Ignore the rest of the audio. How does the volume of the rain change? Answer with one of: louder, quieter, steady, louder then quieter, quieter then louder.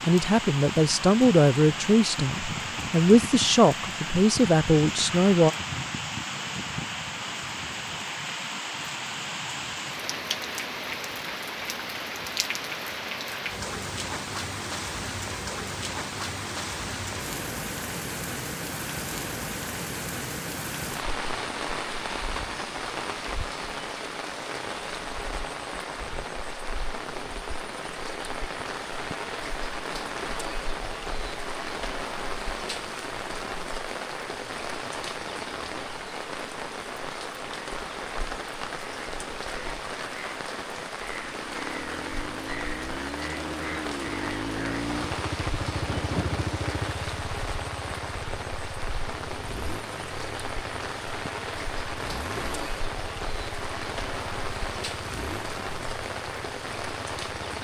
steady.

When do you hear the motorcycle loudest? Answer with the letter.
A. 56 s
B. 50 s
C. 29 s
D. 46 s
D.